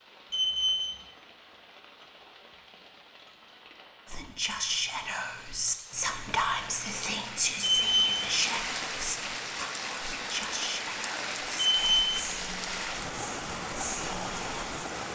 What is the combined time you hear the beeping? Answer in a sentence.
The beeping can be heard for 2 seconds in total.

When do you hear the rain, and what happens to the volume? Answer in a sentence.
You can hear the rain from 0.0 to 15.0 s, getting louder.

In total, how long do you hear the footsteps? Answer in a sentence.
You can't hear the footsteps here.